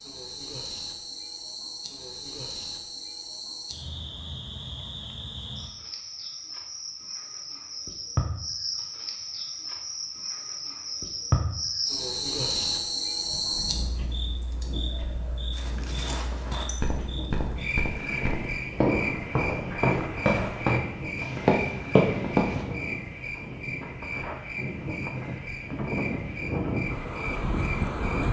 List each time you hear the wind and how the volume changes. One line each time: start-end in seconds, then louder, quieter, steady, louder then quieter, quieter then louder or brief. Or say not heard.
13.1-28.2 louder.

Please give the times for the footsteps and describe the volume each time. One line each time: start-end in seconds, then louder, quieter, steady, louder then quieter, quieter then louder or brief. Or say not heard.
15.5-22.6 louder.